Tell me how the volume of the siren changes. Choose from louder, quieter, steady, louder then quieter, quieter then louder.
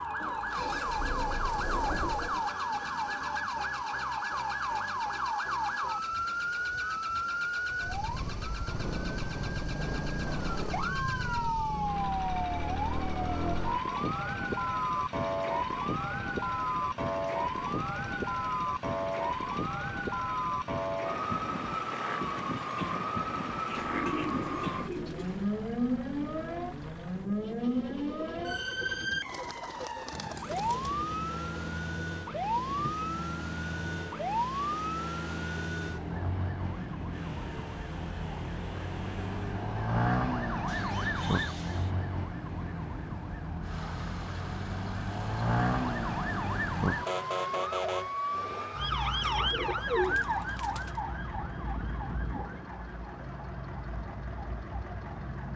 steady.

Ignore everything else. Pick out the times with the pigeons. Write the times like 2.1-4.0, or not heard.
0.2-2.5, 23.6-25.4, 29.2-30.9, 49.2-51.0.